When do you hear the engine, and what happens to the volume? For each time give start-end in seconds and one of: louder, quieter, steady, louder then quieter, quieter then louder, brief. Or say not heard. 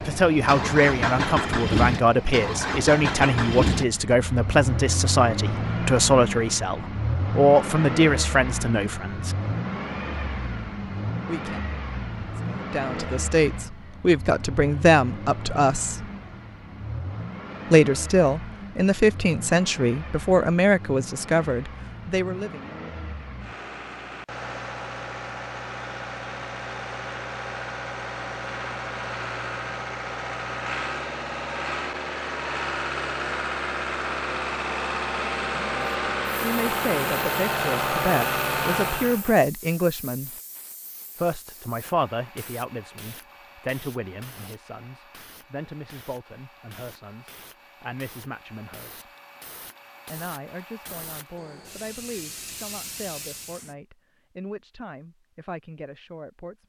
0.0-39.4 quieter then louder.